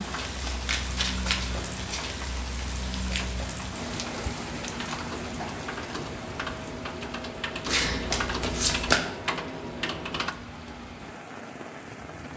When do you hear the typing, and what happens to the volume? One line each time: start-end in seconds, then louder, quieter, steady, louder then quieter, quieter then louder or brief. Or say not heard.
0.1-10.3 louder.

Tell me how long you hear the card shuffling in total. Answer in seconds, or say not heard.
3 s.